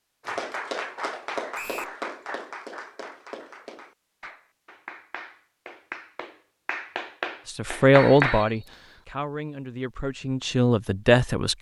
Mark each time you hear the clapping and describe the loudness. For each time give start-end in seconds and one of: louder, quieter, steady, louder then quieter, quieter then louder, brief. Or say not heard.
0.2-8.5 quieter then louder.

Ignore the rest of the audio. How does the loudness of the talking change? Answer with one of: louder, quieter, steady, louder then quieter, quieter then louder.
quieter then louder.